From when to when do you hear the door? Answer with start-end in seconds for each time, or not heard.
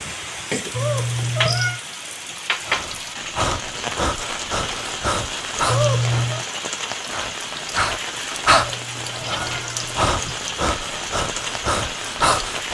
not heard.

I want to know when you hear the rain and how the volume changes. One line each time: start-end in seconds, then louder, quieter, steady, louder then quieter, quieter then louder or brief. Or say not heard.
0.0-12.7 steady.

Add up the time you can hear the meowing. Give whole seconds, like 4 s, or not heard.
4 s.